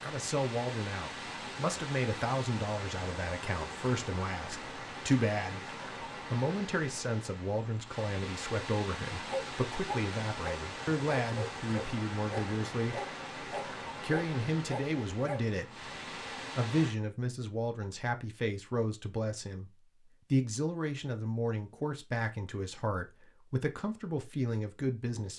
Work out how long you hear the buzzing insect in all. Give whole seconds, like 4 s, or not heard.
not heard.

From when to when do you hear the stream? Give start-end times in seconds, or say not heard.
0.0-16.9.